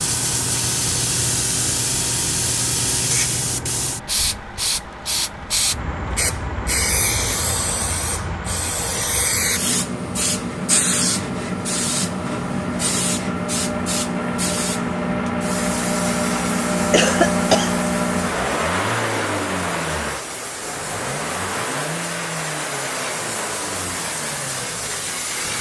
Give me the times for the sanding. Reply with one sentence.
The sanding can't be heard in this clip.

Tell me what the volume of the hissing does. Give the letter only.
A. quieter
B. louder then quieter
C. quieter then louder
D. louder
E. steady
A.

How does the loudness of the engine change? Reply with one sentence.
The volume of the engine goes up, then down.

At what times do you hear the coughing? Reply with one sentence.
The coughing can be heard from 16.9 to 17.8 s.